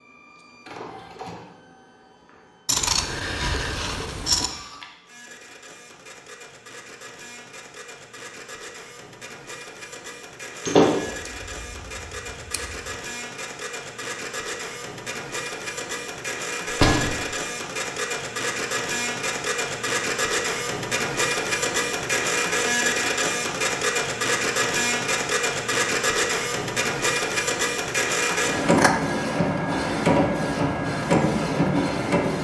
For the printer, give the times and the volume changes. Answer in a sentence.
You can hear the printer from 0.0 to 32.3 s, getting louder.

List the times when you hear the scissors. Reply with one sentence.
You can hear the scissors from 2.6 to 4.5 s, from 11.2 to 12.8 s and from 28.3 to 28.9 s.